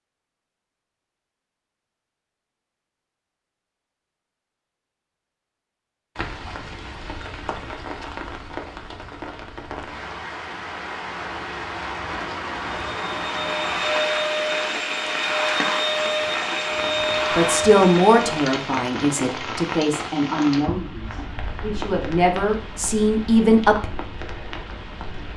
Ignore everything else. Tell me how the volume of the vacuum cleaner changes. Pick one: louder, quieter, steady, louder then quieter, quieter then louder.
steady.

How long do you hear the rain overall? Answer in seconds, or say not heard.
19 s.